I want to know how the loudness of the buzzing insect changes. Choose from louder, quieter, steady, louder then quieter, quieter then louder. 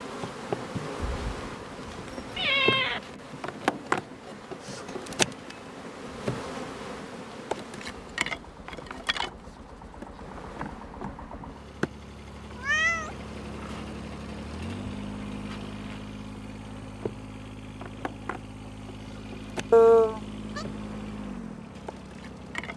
quieter.